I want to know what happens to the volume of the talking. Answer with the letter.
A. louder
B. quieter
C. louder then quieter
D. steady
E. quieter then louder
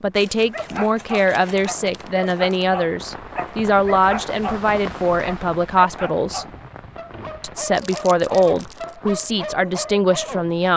D.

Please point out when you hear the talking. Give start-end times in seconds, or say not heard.
0.0-6.5, 7.4-10.7.